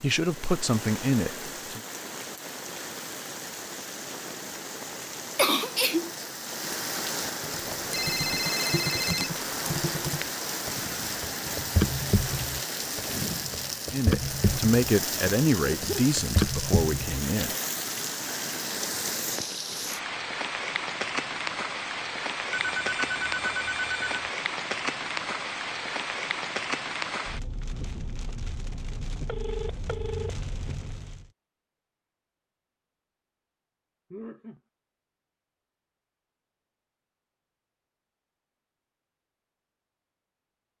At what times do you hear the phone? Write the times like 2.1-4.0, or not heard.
7.9-9.3, 22.5-24.3, 29.2-30.3.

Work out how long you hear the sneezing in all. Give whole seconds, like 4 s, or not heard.
2 s.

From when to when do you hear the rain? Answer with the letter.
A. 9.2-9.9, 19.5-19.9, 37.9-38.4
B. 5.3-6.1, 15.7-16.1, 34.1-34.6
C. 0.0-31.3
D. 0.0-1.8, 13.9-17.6
C.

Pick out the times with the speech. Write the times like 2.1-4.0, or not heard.
0.0-1.8, 13.9-17.6.